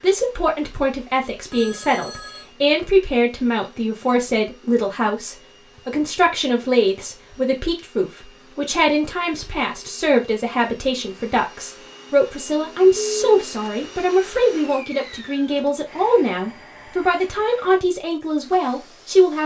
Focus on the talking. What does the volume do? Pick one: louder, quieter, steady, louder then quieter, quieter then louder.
steady.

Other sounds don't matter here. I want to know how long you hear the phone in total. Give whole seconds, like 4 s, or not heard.
2 s.